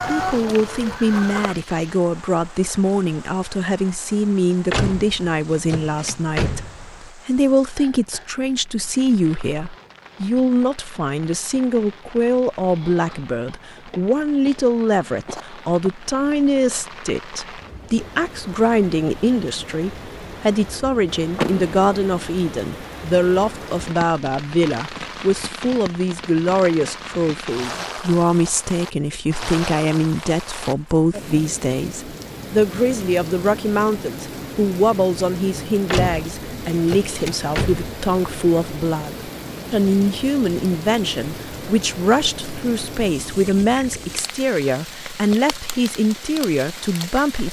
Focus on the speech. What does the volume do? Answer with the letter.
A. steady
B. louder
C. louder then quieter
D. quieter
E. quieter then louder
A.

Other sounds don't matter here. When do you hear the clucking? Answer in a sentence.
You can hear the clucking from 0.0 to 1.6 s.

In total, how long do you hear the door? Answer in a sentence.
You can hear the door for 5 seconds altogether.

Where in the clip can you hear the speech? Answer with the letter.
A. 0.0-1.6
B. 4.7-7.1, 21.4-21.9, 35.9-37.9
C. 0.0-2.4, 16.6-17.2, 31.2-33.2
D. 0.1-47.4
D.